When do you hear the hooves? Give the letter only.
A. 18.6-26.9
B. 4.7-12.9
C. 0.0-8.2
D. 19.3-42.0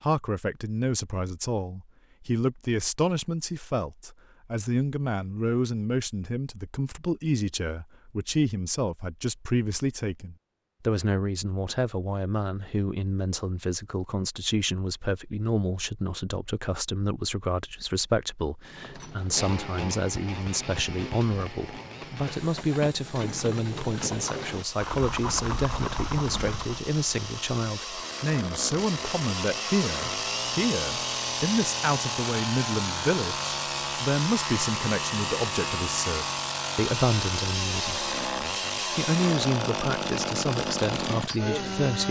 A.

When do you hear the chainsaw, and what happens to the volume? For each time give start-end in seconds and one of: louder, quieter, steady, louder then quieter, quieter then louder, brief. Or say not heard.
19.3-42.0 louder.